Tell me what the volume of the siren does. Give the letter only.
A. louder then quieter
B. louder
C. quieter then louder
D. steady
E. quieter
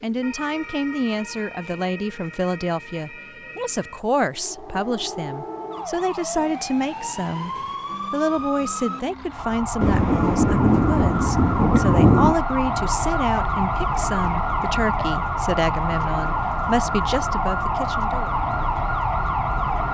B.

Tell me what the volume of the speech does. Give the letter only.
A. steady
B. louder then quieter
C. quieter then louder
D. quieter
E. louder
A.